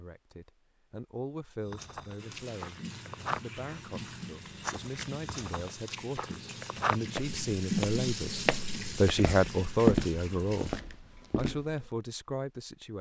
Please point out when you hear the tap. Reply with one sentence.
You can hear the tap from 2.1 to 10.8 s.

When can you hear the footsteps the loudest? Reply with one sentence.
The volume of the footsteps peaks at 10 seconds.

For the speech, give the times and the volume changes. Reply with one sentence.
You can hear the speech from 0.0 to 12.9 s, getting louder then quieter.